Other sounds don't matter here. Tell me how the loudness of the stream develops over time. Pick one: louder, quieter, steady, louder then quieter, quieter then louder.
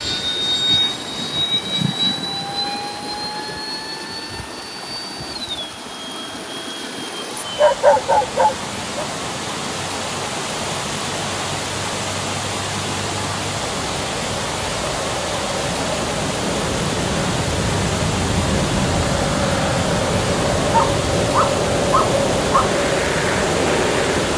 louder.